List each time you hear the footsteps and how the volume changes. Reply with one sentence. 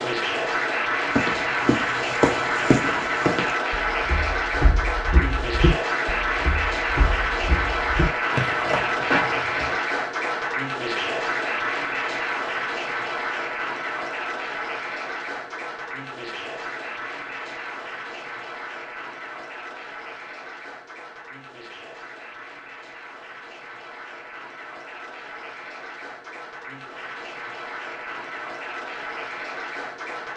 The footsteps can be heard from 1.1 to 9.8 s, getting quieter then louder.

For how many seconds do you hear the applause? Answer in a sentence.
You can hear the applause for 30 seconds altogether.